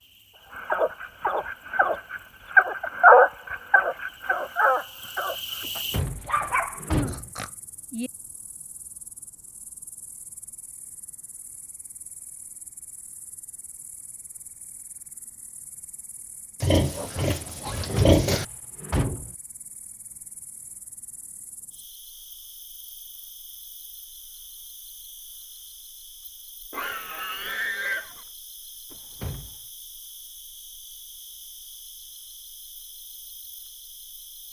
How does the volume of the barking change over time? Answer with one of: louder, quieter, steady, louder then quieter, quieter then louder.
louder then quieter.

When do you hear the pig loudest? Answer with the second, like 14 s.
18 s.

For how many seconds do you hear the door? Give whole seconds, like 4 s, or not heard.
4 s.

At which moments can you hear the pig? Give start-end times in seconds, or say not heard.
7.0-8.1, 16.6-18.4, 26.7-28.2.